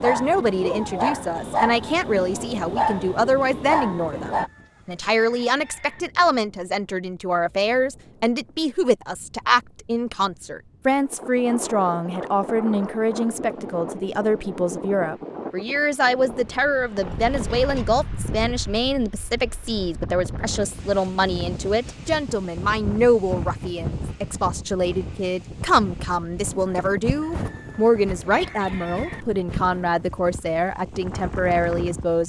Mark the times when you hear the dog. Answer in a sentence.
You can hear the dog from 0.0 to 4.5 s.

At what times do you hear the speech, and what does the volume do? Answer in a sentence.
You can hear the speech from 0.0 to 32.2 s, at a steady volume.